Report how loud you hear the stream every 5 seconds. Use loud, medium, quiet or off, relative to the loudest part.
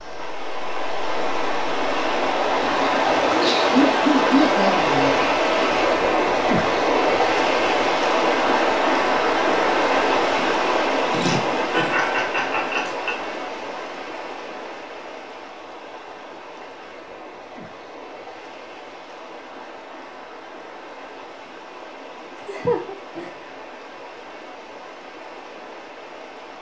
loud, loud, medium, quiet, quiet, quiet.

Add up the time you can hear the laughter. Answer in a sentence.
The laughter can be heard for 5 seconds in total.